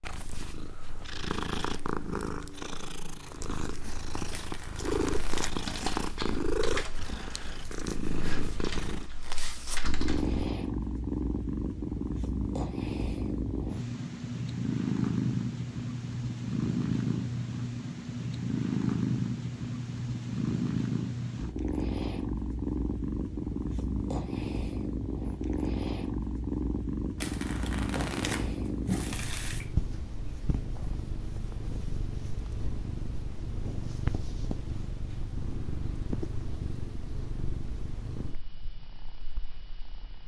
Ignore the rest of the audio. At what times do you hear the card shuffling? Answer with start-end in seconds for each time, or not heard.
4.3-5.5, 27.1-29.7.